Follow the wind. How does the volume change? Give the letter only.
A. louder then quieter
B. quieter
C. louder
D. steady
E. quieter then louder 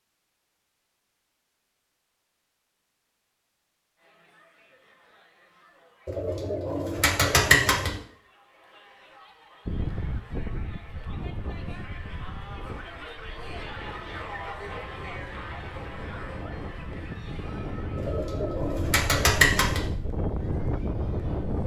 E.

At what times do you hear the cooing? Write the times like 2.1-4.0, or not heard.
6.0-8.0, 17.9-19.9.